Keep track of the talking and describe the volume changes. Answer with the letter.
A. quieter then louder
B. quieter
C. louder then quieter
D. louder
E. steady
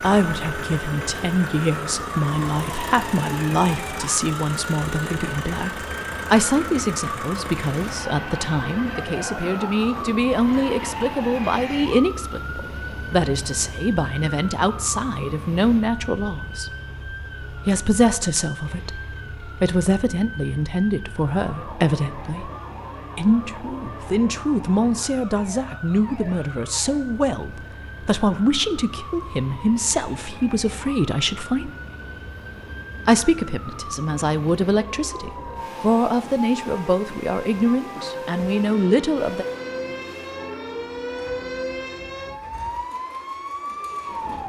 E.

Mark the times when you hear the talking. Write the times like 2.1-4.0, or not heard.
0.0-16.7, 17.6-22.5, 23.1-31.7, 33.0-39.5.